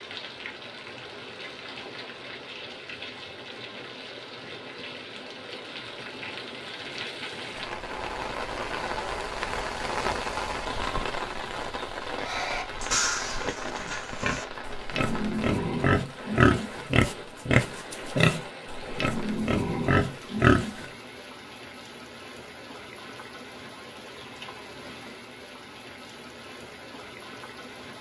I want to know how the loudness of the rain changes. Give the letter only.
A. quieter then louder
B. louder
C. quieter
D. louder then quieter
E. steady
D.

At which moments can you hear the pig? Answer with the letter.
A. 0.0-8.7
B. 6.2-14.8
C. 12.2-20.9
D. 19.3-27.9
C.